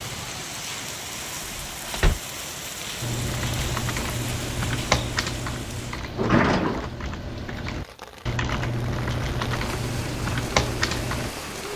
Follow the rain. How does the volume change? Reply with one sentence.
The loudness of the rain goes down, then up.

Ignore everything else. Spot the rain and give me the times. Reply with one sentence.
You can hear the rain from 0.0 to 11.7 s.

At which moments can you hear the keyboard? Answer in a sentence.
The keyboard can be heard from 3.0 to 11.3 s.